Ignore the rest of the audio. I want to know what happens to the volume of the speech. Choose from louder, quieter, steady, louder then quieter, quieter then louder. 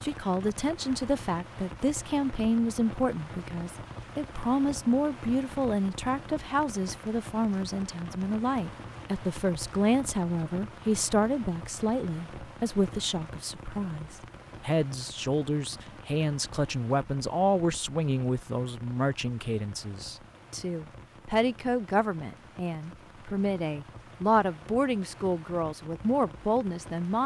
steady.